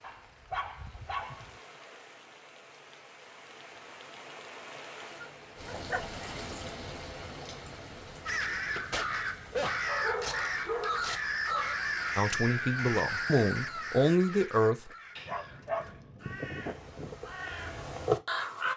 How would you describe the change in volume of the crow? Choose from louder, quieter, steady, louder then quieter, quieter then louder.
quieter then louder.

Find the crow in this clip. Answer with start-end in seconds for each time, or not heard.
8.2-18.7.